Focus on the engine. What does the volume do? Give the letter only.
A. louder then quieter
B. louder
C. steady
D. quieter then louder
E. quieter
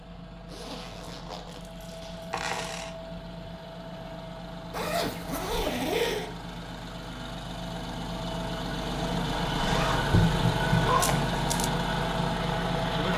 B.